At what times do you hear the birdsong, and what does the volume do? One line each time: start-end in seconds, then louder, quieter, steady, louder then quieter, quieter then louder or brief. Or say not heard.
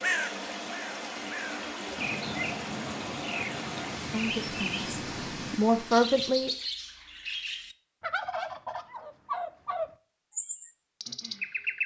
0.0-11.8 steady.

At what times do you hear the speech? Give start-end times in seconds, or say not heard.
4.1-6.5.